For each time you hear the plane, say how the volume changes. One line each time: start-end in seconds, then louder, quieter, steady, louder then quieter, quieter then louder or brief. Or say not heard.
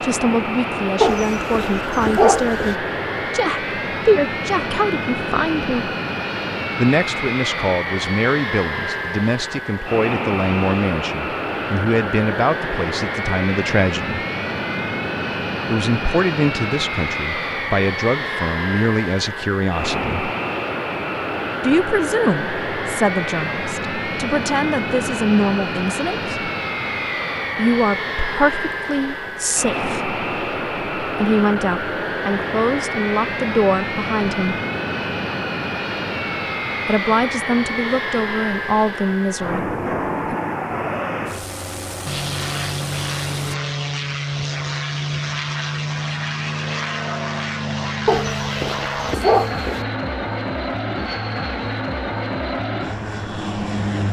0.0-54.0 steady.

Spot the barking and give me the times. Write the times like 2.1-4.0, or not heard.
1.0-2.8, 48.0-49.9.